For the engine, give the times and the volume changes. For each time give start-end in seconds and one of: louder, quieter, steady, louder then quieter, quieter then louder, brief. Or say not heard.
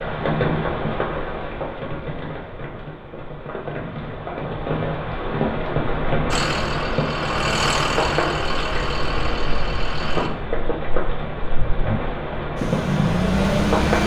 6.3-10.3 louder then quieter
12.6-14.0 brief.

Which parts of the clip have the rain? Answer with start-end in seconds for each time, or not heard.
0.0-14.0.